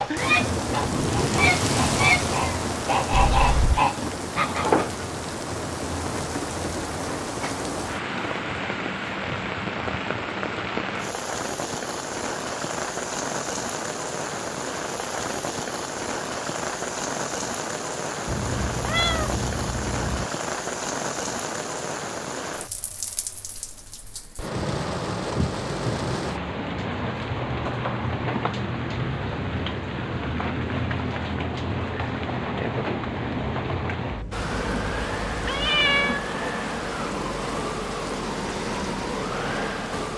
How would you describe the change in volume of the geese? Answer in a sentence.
The loudness of the geese goes up.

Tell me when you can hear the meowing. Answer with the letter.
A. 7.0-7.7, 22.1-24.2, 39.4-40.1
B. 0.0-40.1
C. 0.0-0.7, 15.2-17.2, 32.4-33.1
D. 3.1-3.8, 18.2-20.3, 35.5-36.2
D.